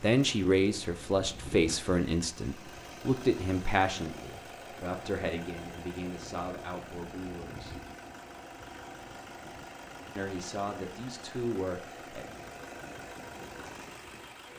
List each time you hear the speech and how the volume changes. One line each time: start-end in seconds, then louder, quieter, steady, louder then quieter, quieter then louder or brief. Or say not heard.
0.0-7.8 quieter
10.2-12.2 brief.